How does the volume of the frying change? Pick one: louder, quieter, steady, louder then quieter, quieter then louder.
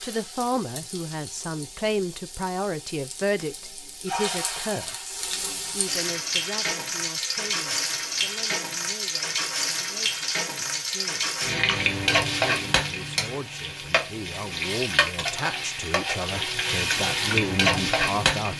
louder.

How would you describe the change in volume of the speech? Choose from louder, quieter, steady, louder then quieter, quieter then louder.
quieter then louder.